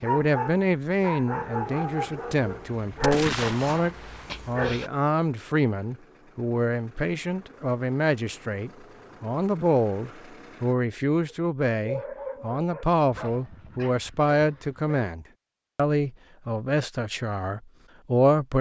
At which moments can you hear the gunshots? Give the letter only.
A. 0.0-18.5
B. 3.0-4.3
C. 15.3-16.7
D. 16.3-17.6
B.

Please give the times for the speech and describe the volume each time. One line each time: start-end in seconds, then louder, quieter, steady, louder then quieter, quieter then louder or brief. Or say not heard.
0.0-18.5 steady.